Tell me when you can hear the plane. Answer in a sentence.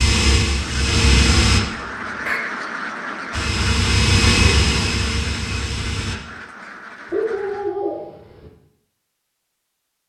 The plane can be heard from 0.0 to 1.6 s and from 3.3 to 6.2 s.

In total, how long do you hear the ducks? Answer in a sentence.
The ducks can be heard for 7 seconds in total.